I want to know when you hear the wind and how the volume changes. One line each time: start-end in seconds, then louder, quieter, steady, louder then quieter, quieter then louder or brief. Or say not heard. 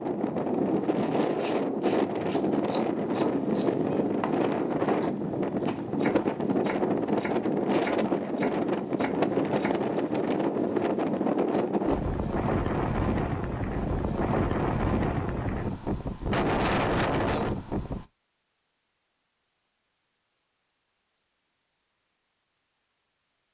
0.0-18.1 steady.